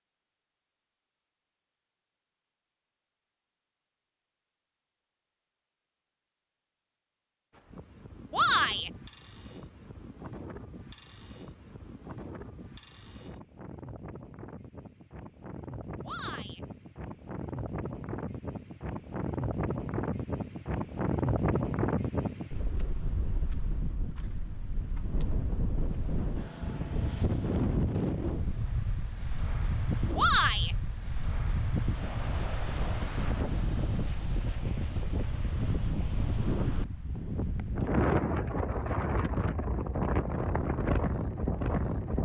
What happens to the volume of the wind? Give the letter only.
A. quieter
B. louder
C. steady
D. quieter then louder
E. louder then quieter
B.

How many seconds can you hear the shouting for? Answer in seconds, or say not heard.
2 s.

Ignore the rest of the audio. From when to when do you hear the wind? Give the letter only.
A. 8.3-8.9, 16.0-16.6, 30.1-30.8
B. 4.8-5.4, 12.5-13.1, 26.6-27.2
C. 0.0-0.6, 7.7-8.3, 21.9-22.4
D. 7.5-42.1
D.